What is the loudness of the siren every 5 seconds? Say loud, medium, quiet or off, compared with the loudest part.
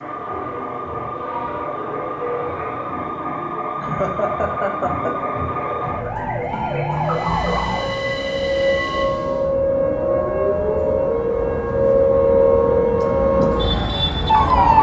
medium, medium, loud.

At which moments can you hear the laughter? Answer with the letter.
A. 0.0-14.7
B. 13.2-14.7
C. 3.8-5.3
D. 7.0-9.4
C.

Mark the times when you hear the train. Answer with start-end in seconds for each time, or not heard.
7.0-9.4.